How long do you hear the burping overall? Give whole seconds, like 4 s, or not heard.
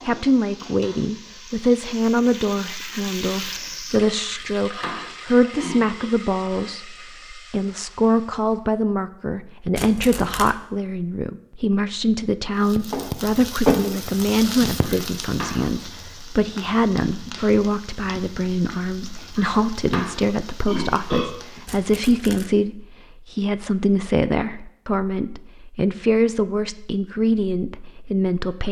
5 s.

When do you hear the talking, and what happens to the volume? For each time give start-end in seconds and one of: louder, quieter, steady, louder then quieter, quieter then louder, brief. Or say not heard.
0.1-28.6 steady.